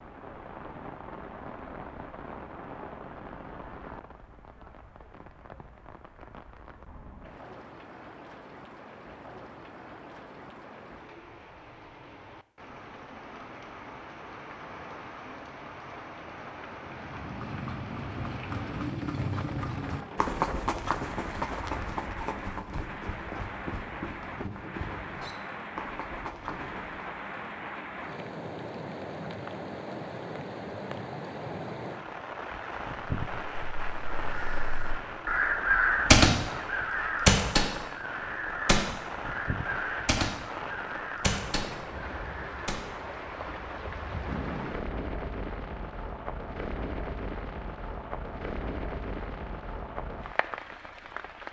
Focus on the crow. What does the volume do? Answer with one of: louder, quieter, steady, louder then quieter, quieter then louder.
louder then quieter.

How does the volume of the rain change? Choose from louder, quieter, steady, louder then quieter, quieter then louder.
louder.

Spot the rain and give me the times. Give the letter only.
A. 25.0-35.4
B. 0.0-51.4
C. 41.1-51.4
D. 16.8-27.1
B.